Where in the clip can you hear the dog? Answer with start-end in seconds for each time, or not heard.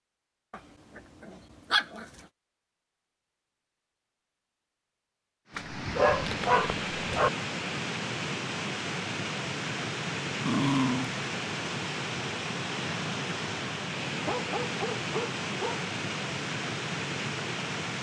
0.5-2.0, 5.5-7.3, 10.4-11.2, 14.2-15.8.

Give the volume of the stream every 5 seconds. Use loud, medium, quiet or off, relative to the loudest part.
off, loud, loud, loud.